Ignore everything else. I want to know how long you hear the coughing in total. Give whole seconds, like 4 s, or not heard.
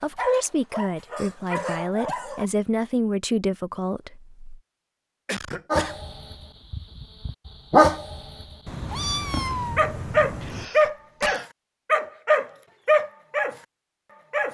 3 s.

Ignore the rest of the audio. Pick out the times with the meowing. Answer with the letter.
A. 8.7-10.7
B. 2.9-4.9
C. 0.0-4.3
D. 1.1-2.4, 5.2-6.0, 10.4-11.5
A.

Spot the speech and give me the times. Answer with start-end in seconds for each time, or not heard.
0.0-4.3.